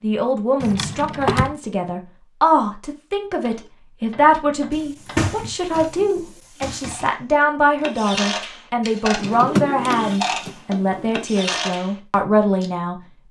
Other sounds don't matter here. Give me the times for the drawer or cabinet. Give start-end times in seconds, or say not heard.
0.6-1.6, 4.7-7.1, 9.1-11.1.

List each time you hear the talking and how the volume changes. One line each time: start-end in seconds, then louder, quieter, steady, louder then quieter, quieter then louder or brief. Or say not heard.
0.0-13.0 steady.